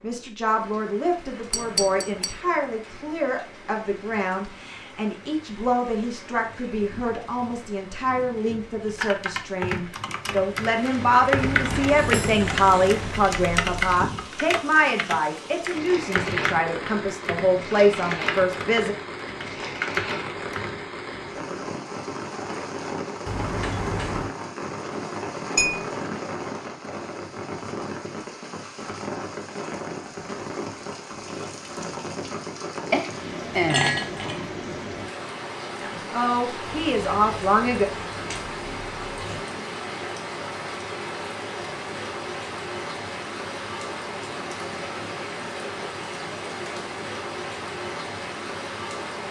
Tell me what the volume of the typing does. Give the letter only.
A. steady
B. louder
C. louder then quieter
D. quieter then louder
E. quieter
A.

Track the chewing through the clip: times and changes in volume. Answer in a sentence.
The chewing can't be heard in this clip.